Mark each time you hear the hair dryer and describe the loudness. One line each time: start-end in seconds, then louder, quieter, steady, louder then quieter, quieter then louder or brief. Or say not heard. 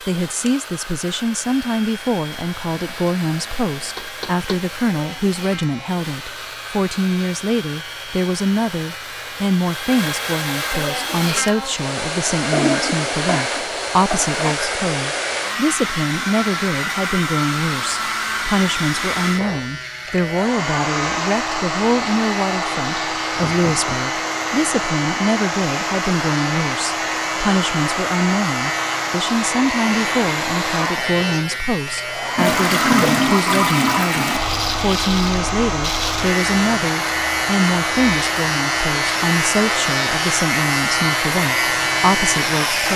0.0-42.9 louder.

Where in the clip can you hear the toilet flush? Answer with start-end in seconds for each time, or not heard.
12.5-14.6, 32.4-34.4.